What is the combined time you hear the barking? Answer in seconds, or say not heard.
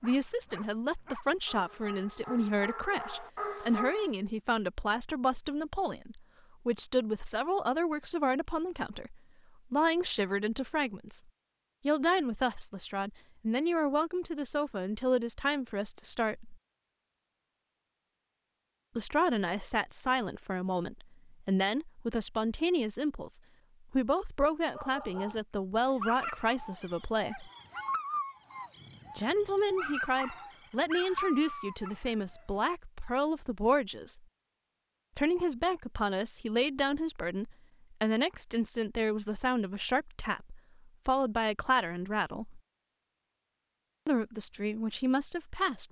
12 s.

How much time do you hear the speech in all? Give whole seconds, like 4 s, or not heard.
39 s.